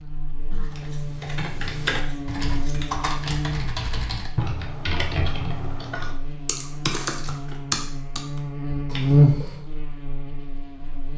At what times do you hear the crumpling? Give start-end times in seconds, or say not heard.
6.6-7.6.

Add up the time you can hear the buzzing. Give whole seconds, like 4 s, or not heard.
11 s.